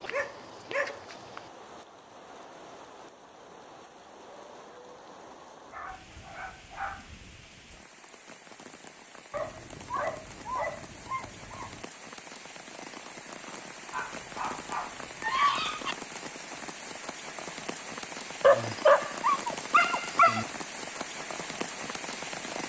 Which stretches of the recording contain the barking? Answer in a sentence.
You can hear the barking from 0.0 to 1.4 s, from 5.7 to 7.2 s, from 9.3 to 11.8 s, from 13.9 to 15.9 s and from 18.4 to 20.4 s.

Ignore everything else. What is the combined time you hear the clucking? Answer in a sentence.
The clucking can't be heard in this clip.